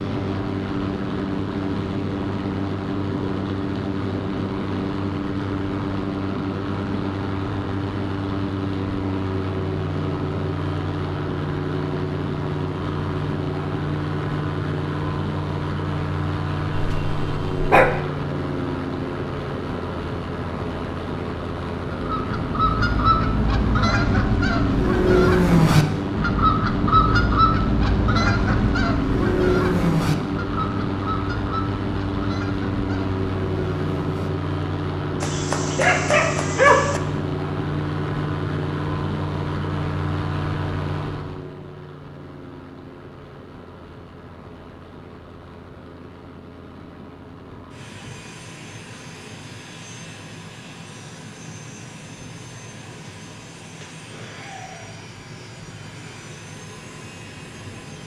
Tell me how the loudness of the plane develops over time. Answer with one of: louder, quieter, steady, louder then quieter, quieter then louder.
quieter.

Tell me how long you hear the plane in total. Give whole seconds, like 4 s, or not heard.
58 s.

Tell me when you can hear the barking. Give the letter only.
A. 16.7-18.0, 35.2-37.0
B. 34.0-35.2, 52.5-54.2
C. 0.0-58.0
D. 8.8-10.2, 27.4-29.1
A.